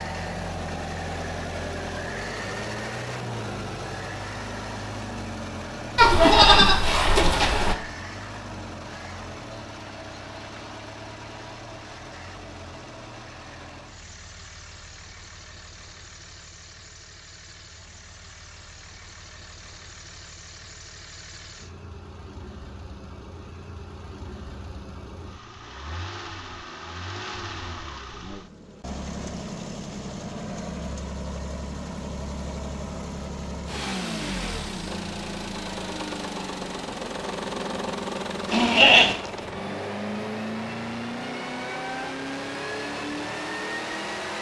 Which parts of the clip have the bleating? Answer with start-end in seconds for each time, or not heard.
6.0-7.8, 38.5-39.1.